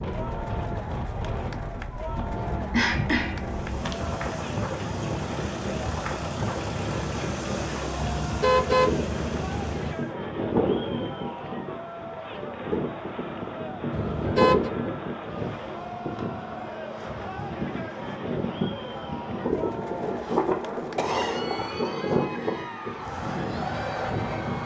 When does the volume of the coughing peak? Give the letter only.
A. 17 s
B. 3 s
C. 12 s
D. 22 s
B.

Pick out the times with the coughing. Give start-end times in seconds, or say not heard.
2.7-4.0, 20.9-21.8.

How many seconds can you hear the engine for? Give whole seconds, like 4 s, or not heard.
7 s.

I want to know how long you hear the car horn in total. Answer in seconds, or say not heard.
3 s.